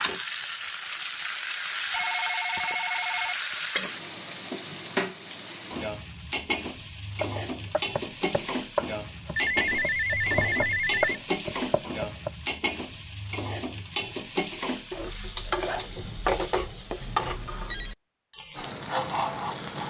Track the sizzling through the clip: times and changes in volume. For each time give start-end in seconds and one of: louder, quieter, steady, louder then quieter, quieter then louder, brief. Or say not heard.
0.0-19.8 steady.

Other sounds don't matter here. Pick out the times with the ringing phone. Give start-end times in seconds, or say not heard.
1.9-3.4, 9.3-11.2, 17.0-17.9.